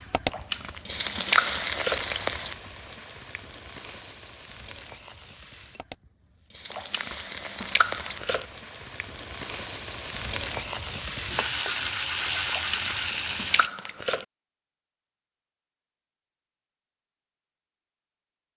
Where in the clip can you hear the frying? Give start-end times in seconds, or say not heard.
0.0-13.7.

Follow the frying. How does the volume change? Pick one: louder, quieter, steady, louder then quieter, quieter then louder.
quieter then louder.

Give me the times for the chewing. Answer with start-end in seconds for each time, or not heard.
0.2-2.0, 6.7-8.4, 12.4-14.2.